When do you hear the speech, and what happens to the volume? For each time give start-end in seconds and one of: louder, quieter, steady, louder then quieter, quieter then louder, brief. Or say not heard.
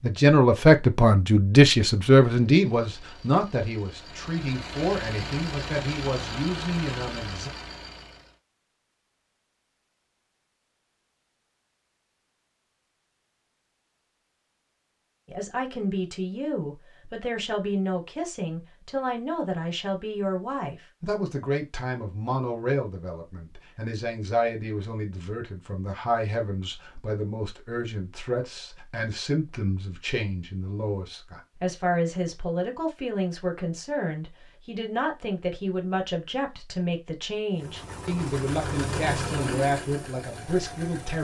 0.0-7.5 quieter
15.2-41.1 steady.